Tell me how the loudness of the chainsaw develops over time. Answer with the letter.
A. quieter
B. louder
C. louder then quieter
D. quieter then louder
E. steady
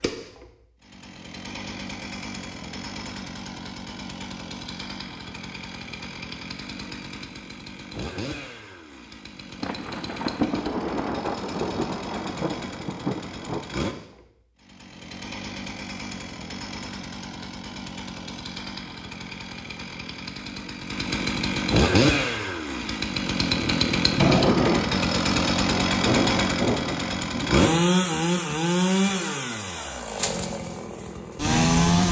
B.